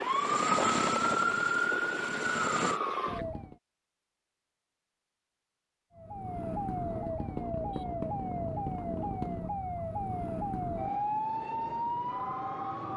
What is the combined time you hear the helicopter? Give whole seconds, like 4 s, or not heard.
3 s.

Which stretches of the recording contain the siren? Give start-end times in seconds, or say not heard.
0.0-3.5, 6.0-12.9.